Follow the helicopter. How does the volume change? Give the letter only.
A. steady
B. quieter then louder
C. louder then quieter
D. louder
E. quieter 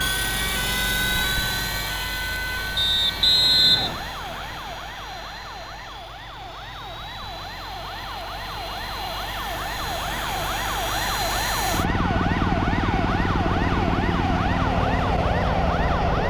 B.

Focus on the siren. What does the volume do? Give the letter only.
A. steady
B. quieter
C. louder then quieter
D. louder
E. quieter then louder
E.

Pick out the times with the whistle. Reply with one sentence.
You can hear the whistle from 2.8 to 4.0 s.